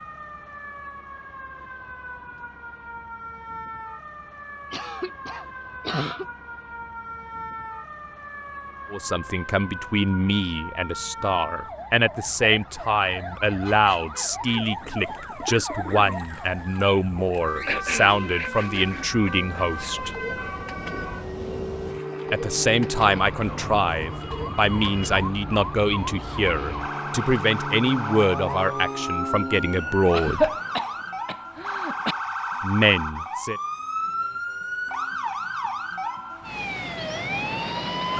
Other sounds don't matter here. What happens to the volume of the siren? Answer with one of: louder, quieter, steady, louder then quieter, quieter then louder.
louder.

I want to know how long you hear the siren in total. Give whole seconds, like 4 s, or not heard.
38 s.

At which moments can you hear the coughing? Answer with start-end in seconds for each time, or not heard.
4.7-6.2, 17.6-20.1, 30.1-32.1.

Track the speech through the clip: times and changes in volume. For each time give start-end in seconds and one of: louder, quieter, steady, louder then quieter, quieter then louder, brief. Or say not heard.
8.9-20.1 steady
22.3-30.5 steady
32.6-33.6 brief.